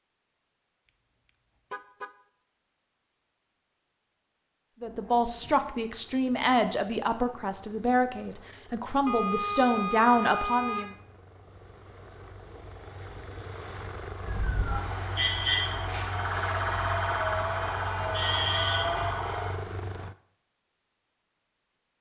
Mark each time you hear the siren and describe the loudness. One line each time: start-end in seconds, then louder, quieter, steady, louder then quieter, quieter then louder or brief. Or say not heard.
14.2-19.6 steady.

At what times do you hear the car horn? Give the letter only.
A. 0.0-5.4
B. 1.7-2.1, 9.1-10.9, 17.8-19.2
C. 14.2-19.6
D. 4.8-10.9
B.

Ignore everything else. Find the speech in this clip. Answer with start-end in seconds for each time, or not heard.
4.8-10.9.